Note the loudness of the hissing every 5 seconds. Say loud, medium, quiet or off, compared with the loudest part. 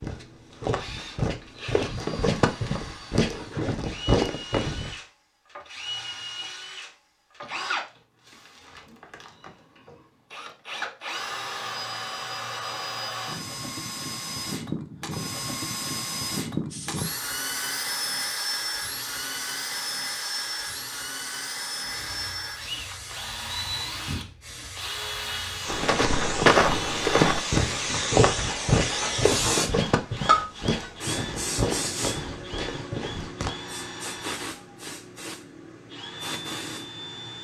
off, off, off, medium, medium, loud, loud, medium.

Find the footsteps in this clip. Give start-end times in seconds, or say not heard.
0.0-5.0, 25.6-33.5.